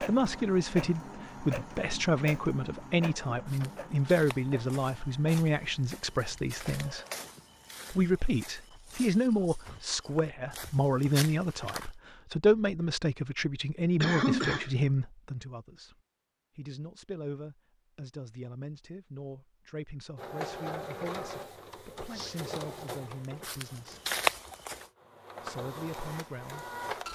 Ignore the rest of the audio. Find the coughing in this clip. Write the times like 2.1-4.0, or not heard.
14.0-14.8.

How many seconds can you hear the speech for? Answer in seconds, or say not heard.
25 s.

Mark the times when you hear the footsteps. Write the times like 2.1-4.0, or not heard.
3.5-11.9, 22.1-24.9.